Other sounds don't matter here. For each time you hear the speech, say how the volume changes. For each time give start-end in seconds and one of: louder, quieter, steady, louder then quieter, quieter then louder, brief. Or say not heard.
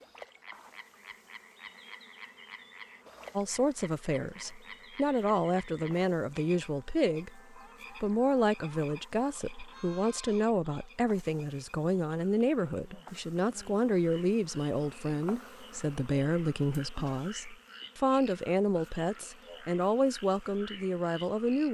3.4-21.6 steady.